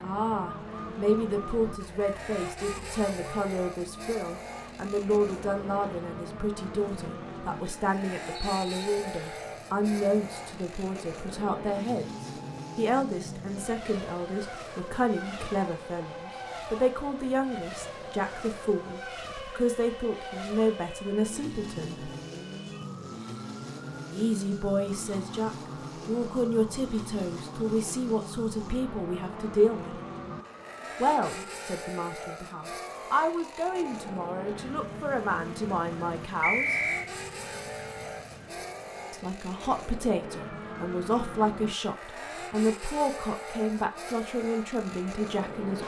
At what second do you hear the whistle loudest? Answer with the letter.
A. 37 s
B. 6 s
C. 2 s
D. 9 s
A.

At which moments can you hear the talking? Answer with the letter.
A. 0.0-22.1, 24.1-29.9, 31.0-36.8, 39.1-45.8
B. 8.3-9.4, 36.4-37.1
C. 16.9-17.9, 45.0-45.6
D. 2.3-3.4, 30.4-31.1
A.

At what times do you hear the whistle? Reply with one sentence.
The whistle can be heard from 8.3 to 9.4 s and from 36.4 to 37.1 s.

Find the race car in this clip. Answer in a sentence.
The race car can be heard from 0.0 to 45.8 s.